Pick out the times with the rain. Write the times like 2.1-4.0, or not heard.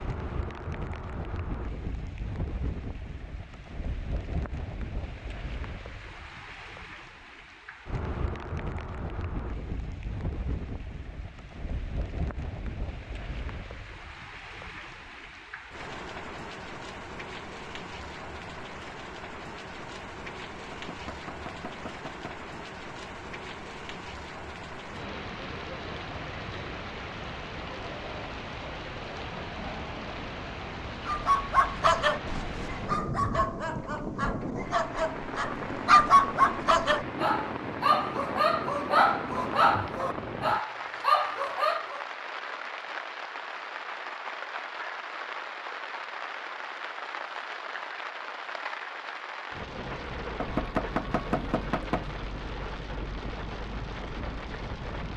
0.0-55.1.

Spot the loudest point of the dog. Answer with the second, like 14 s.
36 s.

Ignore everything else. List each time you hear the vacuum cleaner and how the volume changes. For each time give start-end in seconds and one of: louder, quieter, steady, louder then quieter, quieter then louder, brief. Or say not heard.
not heard.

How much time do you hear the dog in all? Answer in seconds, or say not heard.
11 s.